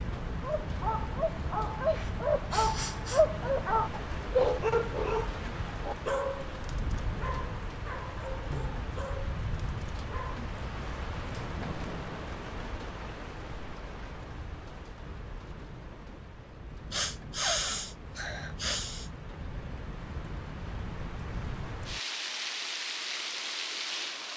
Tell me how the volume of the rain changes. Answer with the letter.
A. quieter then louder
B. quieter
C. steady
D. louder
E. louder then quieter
A.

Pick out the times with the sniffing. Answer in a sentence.
You can hear the sniffing from 1.9 to 3.2 s and from 16.9 to 19.1 s.